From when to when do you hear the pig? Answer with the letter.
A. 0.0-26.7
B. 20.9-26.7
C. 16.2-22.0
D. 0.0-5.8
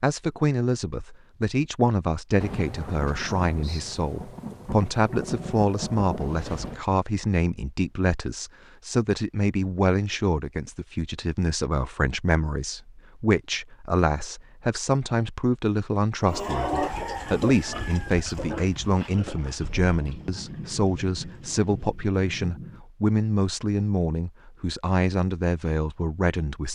C.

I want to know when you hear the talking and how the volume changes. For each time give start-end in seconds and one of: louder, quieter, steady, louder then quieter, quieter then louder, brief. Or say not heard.
0.0-26.7 steady.